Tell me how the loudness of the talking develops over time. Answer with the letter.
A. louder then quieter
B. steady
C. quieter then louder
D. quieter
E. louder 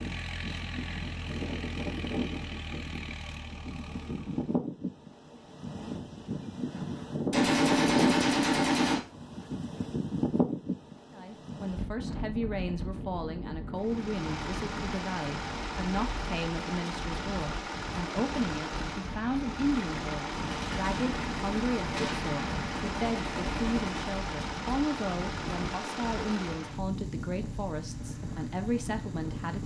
B.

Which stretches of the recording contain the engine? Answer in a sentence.
You can hear the engine from 0.0 to 4.5 s and from 13.8 to 29.6 s.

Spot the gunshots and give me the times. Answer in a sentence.
You can hear the gunshots from 7.3 to 9.0 s and from 20.3 to 24.1 s.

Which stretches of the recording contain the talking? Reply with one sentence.
You can hear the talking from 11.1 to 29.6 s.